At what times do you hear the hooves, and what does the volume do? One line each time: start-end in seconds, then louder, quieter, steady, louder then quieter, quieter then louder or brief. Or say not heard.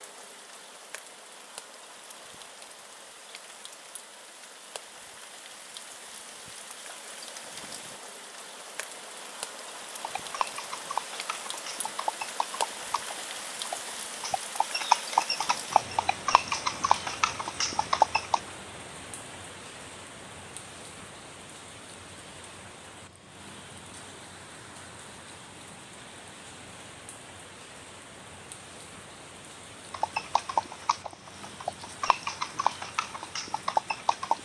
9.9-18.4 louder
29.9-34.3 quieter then louder.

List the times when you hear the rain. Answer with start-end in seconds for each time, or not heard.
0.0-34.3.